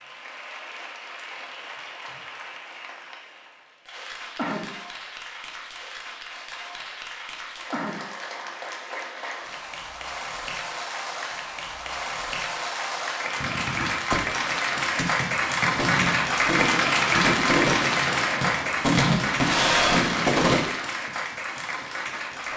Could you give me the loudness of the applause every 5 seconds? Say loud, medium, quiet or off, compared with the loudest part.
quiet, quiet, medium, loud, medium.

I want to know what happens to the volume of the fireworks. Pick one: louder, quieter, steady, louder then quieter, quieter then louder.
louder.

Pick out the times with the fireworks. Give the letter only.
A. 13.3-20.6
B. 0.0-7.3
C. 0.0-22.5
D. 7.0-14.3
A.